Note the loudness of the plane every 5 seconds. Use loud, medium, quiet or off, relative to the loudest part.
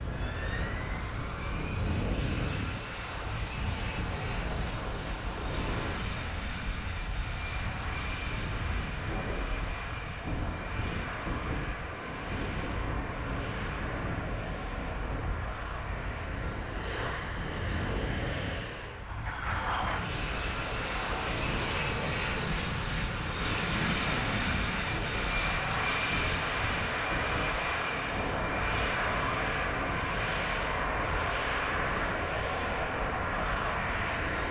medium, medium, medium, medium, loud, loud, loud.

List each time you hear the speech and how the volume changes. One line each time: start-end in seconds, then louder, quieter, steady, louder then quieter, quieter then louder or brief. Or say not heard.
not heard.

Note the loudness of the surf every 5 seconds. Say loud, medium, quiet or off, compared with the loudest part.
loud, loud, loud, loud, loud, loud, medium.